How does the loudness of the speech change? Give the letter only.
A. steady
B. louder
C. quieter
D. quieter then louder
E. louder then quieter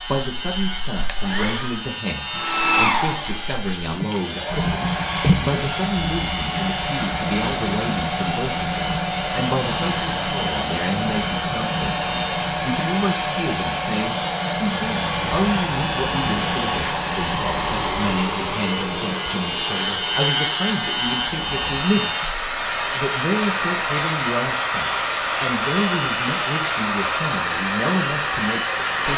A.